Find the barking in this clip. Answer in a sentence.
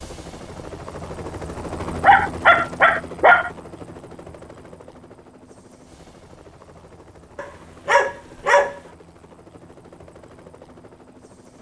The barking can be heard from 2.0 to 3.5 s and from 7.3 to 8.8 s.